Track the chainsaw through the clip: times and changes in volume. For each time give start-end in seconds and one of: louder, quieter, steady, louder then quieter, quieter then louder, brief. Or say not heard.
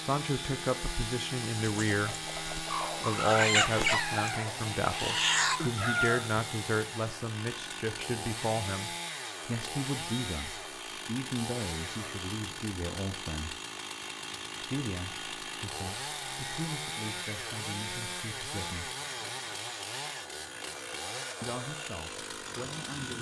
0.0-23.1 steady.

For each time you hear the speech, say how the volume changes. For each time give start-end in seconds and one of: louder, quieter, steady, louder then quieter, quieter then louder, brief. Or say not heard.
0.0-2.1 brief
2.9-13.6 quieter
14.6-18.9 louder then quieter
21.4-23.1 brief.